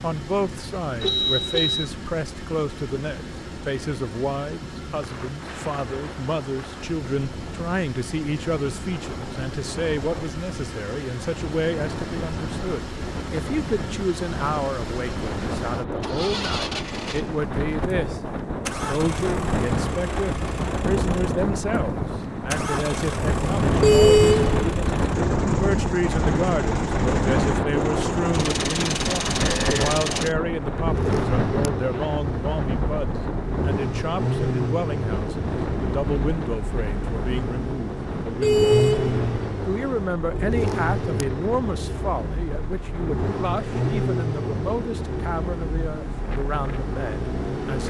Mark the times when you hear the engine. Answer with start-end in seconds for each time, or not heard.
0.0-47.8.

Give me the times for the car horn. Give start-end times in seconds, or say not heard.
1.0-1.9, 23.8-24.6, 38.4-39.2.